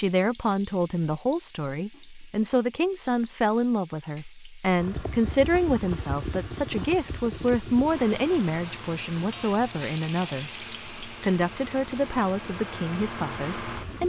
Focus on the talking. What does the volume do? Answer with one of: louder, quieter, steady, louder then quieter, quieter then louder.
steady.